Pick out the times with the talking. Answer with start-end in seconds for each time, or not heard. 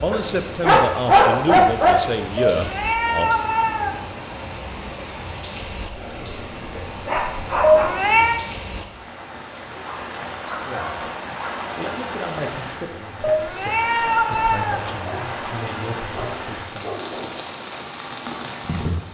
0.0-3.3, 10.7-11.1, 11.8-16.9.